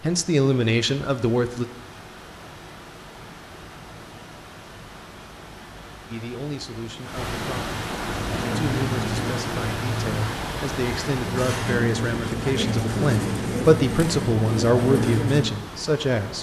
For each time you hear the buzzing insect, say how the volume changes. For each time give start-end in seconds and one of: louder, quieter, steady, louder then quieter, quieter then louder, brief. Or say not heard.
not heard.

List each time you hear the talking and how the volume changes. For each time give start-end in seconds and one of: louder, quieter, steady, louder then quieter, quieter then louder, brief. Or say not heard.
0.0-1.6 brief
6.0-16.3 louder.